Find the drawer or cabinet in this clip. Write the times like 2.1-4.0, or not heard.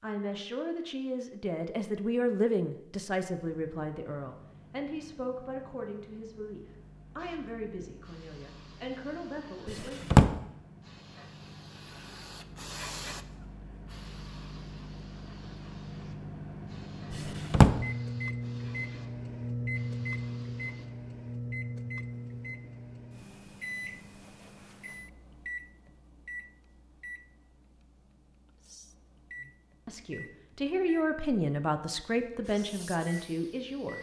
9.7-10.3, 17.1-17.8.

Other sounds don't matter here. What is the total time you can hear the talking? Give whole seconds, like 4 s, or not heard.
15 s.